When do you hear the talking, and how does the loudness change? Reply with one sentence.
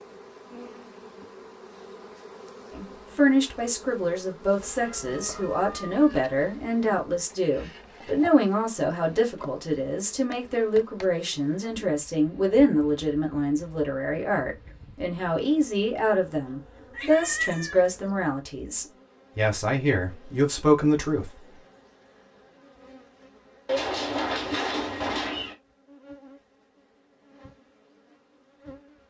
The talking can be heard from 2.8 to 21.6 s, at a steady volume.